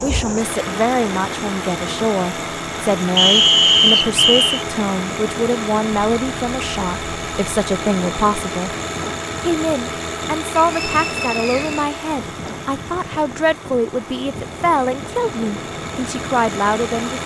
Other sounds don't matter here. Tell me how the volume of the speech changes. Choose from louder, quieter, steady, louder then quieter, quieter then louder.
steady.